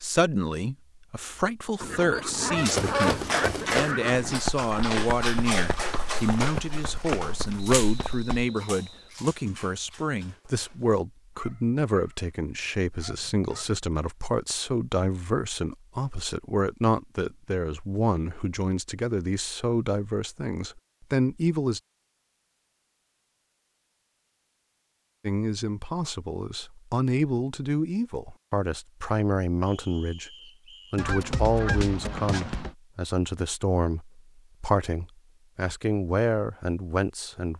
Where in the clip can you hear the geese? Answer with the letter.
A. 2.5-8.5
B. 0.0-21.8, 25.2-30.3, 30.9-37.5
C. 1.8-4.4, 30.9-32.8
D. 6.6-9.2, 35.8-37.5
C.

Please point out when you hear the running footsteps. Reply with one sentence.
The running footsteps can be heard from 2.5 to 8.5 s.